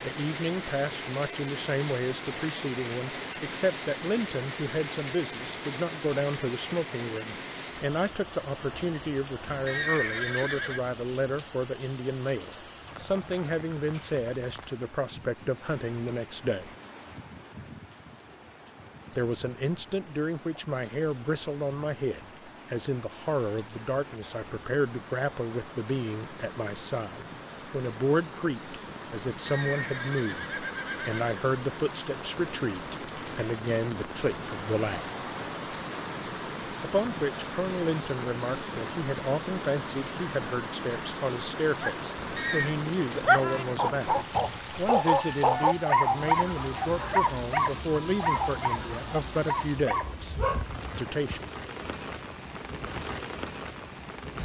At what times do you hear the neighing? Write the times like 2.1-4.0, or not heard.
9.4-10.8, 29.3-31.4, 42.1-42.8.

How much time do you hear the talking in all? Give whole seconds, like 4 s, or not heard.
47 s.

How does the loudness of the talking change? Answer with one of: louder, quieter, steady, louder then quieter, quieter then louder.
steady.